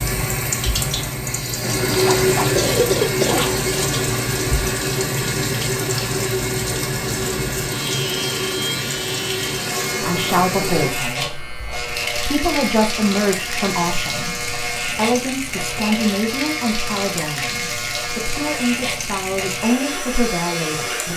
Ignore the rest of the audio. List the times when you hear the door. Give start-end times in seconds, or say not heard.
not heard.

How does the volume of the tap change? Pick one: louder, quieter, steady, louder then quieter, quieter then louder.
quieter.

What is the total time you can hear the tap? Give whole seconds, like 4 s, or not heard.
21 s.